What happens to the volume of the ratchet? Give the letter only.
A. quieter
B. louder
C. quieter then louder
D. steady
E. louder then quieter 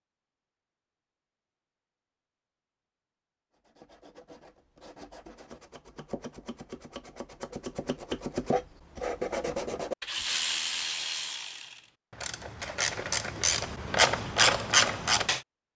C.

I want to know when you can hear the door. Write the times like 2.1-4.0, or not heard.
not heard.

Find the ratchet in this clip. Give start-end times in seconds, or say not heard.
10.1-15.4.